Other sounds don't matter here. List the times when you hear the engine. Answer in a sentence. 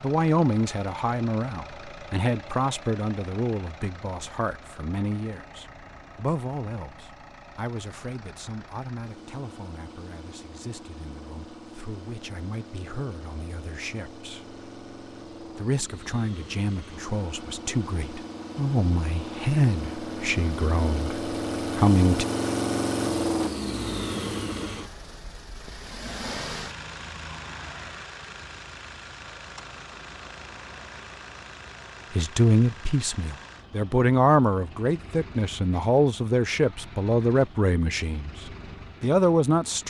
You can hear the engine from 0.0 to 39.8 s.